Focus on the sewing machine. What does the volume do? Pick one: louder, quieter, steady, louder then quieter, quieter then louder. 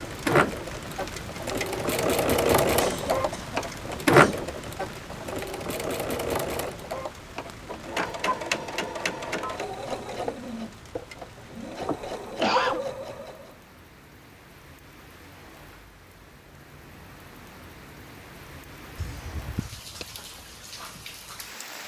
quieter.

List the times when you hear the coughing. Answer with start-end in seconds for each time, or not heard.
2.8-4.5, 11.8-12.8, 18.9-20.1.